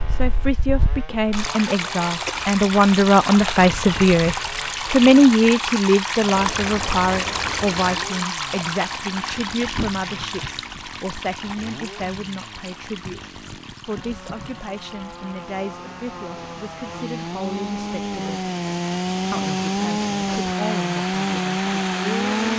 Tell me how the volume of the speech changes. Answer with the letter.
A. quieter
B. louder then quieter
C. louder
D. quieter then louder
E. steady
A.